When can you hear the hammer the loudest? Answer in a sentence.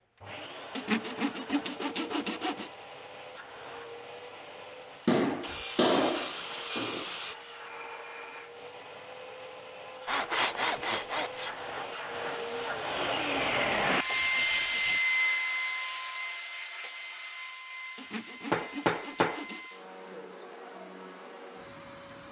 The volume of the hammer peaks at 6 seconds.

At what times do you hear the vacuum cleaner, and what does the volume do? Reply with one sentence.
The vacuum cleaner can be heard from 0.1 to 22.2 s, getting louder then quieter.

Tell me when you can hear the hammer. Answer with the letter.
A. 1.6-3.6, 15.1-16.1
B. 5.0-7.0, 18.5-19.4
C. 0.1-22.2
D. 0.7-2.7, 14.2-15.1
B.